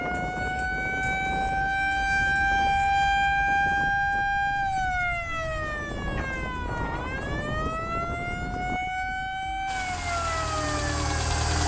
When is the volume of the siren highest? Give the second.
3 s.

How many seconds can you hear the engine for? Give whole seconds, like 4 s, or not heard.
2 s.